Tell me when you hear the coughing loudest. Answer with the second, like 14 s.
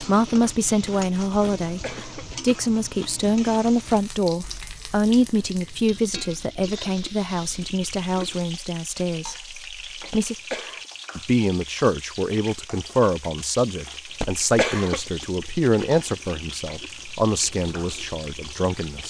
15 s.